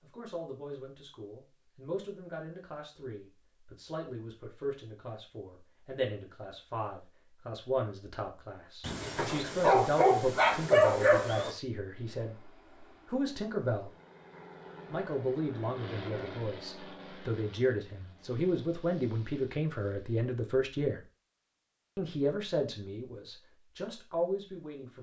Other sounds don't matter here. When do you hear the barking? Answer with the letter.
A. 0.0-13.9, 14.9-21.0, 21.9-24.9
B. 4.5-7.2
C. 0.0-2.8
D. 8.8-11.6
D.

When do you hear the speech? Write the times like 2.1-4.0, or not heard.
0.0-13.9, 14.9-21.0, 21.9-24.9.